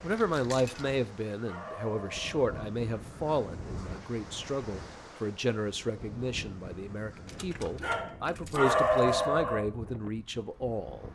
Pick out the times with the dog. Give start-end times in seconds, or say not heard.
0.7-2.7, 7.8-9.7.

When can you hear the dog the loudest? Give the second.
9 s.